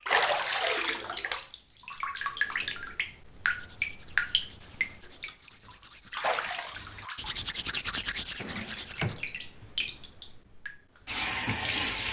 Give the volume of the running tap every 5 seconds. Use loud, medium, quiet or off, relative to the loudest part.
loud, medium, loud.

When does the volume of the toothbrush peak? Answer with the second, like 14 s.
8 s.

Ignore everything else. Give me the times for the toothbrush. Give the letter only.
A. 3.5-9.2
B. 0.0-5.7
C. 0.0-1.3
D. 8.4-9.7
A.